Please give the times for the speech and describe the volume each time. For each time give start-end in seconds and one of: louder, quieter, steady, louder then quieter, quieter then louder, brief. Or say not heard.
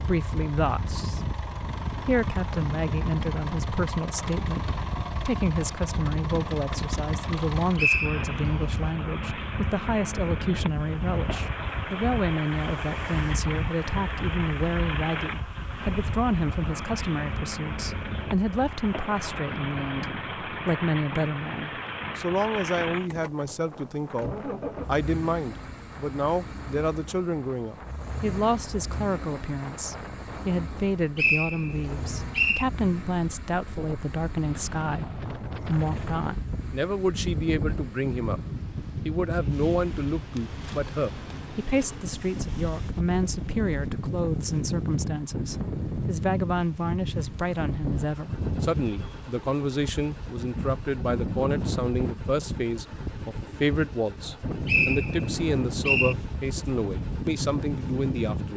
0.0-1.3 brief
2.0-38.4 steady
39.0-58.5 steady.